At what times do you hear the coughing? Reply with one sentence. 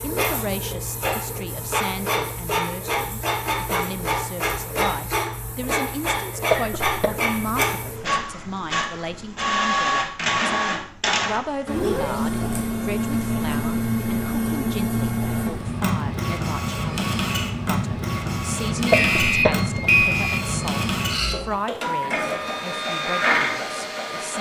The coughing can be heard from 6.5 to 7.6 s and from 18.9 to 19.6 s.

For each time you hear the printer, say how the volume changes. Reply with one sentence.
You can hear the printer from 0.0 to 24.3 s, at a steady volume.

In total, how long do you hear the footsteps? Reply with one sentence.
You can't hear the footsteps here.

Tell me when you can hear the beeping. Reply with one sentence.
You can hear the beeping from 18.9 to 20.6 s.